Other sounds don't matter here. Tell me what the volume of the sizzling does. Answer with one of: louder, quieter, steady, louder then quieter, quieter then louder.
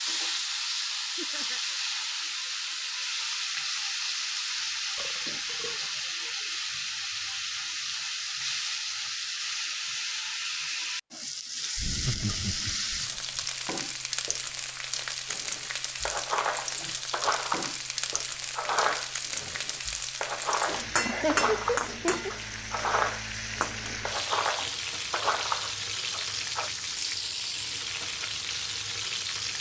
steady.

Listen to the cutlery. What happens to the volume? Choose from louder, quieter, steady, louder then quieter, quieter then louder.
steady.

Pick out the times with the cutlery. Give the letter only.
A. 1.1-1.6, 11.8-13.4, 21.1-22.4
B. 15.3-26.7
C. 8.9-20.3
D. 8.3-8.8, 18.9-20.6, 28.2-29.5
B.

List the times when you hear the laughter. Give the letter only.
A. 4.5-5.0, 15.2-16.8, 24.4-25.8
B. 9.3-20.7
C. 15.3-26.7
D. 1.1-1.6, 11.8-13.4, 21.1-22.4
D.